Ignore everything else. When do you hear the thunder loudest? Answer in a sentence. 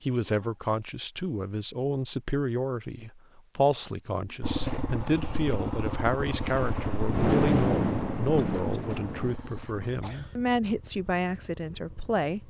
The loudest moment of the thunder is at 7 seconds.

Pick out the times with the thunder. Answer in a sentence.
You can hear the thunder from 6.5 to 9.3 s.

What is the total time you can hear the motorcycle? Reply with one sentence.
The motorcycle can be heard for 8 seconds in total.